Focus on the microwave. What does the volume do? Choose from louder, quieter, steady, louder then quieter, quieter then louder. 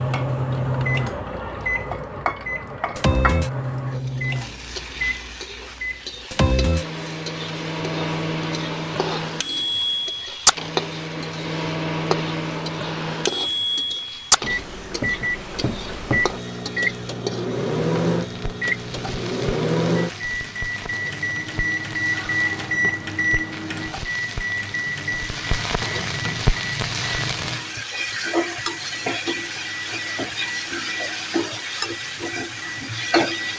quieter.